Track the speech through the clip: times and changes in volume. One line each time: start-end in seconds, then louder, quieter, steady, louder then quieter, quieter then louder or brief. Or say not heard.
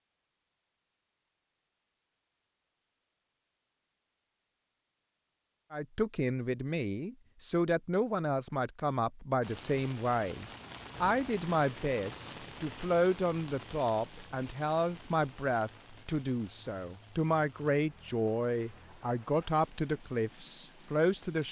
5.7-21.4 steady.